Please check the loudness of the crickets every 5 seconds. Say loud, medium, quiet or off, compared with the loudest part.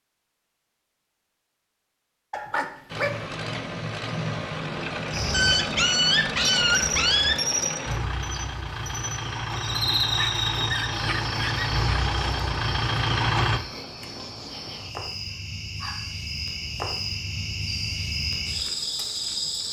off, loud, loud, loud.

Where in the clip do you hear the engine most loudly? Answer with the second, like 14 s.
13 s.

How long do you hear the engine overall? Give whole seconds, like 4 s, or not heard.
11 s.